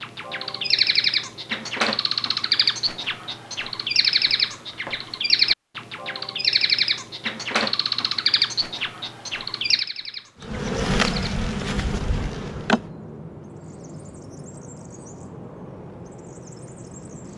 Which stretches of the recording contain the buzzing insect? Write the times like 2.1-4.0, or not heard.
10.4-12.8.